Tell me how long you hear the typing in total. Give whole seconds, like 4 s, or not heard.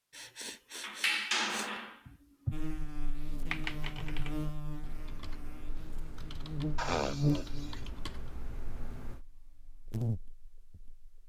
6 s.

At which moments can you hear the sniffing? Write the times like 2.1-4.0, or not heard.
0.1-2.5, 6.8-7.8.